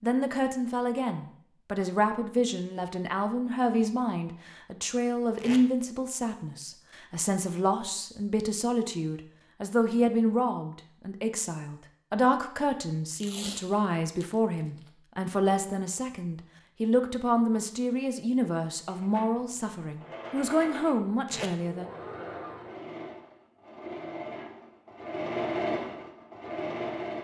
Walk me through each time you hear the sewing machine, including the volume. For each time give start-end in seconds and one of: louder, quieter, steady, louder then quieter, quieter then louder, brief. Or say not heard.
18.8-27.1 louder.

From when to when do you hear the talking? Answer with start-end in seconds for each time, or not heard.
0.0-21.9.